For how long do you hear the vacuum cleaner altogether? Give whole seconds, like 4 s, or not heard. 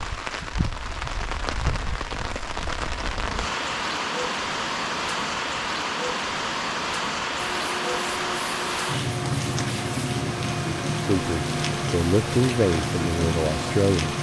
7 s.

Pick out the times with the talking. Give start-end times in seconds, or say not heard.
11.1-14.1.